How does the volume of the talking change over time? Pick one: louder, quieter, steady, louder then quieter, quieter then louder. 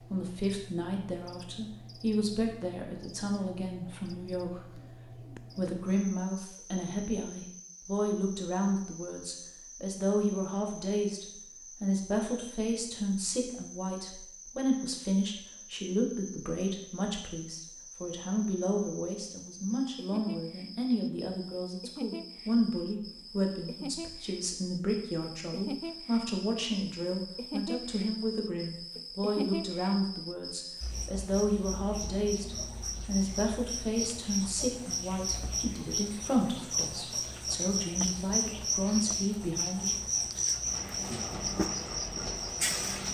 steady.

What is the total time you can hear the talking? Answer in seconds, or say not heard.
39 s.